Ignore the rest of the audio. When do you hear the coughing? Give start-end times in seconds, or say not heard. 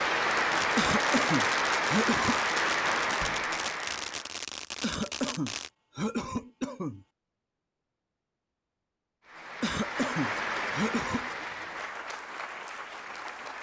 0.8-2.4, 4.8-7.0, 9.6-11.3.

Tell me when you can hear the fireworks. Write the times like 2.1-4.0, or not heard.
0.3-5.7.